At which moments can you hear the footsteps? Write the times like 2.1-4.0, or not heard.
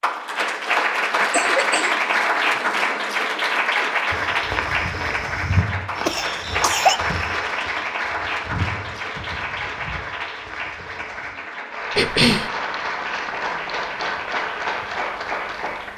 4.1-11.3.